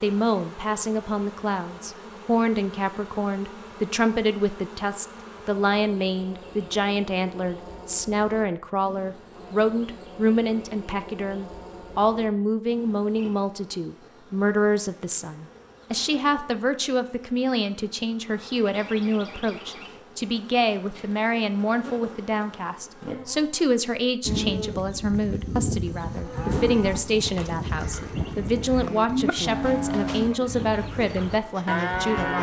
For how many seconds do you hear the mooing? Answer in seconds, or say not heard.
8 s.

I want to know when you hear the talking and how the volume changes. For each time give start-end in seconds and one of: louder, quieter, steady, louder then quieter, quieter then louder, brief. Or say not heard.
0.0-32.3 steady.